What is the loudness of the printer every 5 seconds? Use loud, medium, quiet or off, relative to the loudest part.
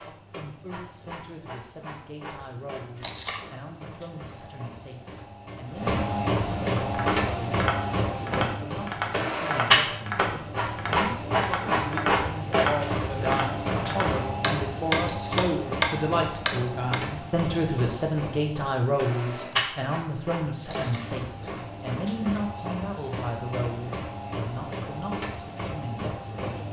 quiet, loud, loud, medium, medium, medium.